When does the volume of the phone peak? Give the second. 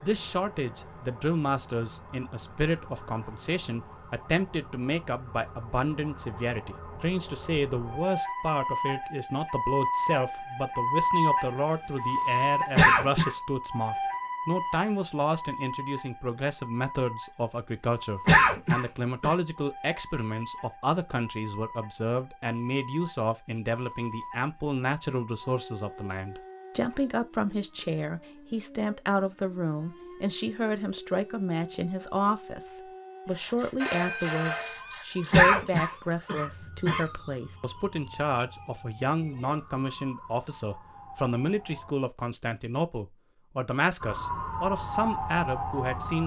34 s.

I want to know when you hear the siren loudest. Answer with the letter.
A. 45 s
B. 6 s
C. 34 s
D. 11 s
D.